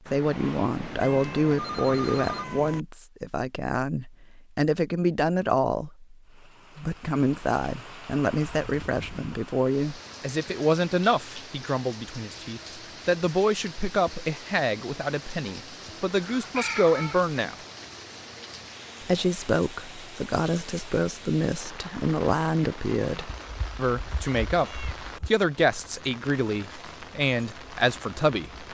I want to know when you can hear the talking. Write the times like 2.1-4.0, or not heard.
0.1-6.2, 6.8-17.6, 19.0-28.6.